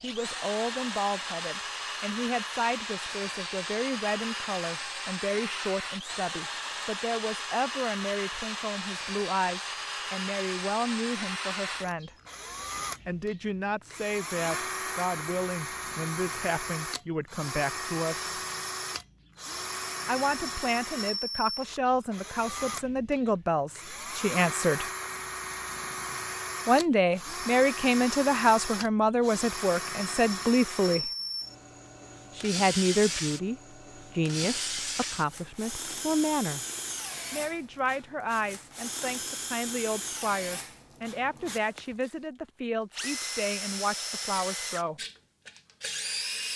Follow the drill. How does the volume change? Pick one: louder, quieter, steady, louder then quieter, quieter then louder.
steady.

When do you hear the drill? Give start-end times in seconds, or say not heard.
0.0-46.5.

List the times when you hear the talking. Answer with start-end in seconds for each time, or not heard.
0.0-12.1, 13.1-18.4, 20.1-24.9, 26.6-31.1, 32.4-36.6, 37.3-45.0.